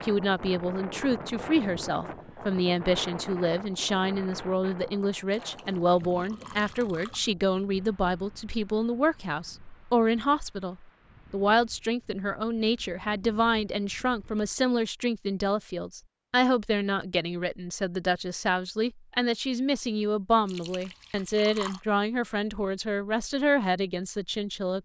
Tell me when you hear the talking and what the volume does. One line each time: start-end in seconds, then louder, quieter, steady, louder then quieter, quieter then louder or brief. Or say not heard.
0.0-24.7 steady.